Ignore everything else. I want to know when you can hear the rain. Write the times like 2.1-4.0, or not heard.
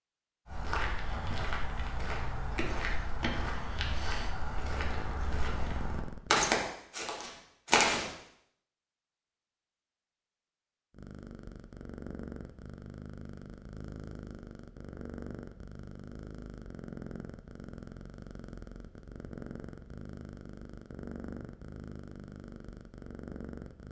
not heard.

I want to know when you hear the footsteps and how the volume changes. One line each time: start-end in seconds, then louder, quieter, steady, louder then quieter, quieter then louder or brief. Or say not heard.
0.5-8.1 louder.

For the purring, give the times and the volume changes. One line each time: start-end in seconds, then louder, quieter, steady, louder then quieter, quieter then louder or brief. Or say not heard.
4.6-6.8 brief
10.9-23.8 steady.